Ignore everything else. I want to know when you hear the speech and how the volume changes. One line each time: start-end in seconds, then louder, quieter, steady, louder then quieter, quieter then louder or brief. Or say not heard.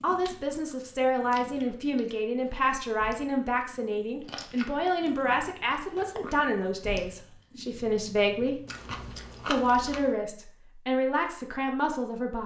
0.0-8.6 steady
9.4-12.4 brief.